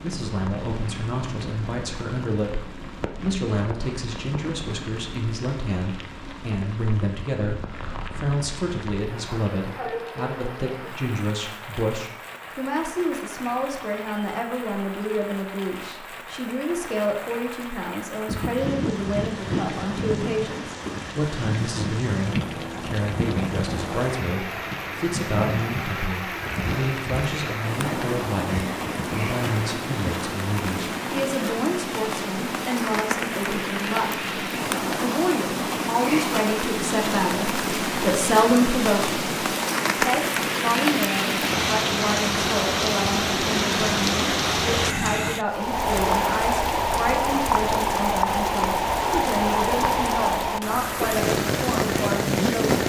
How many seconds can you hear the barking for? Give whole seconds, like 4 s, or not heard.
not heard.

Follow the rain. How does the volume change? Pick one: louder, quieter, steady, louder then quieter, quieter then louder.
louder.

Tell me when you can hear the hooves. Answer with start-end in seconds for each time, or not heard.
18.2-29.9.